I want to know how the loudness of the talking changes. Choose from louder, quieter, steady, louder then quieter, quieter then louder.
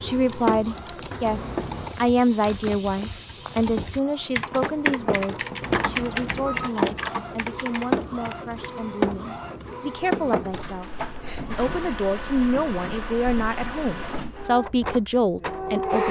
quieter then louder.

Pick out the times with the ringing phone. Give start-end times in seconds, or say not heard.
1.2-1.9, 5.6-6.8, 11.3-12.0.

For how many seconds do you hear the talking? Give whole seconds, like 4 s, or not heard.
16 s.